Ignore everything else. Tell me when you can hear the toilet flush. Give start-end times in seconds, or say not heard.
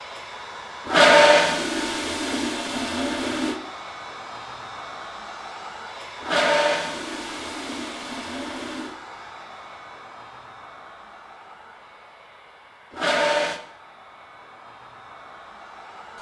0.8-3.5, 6.2-8.9, 12.9-13.6.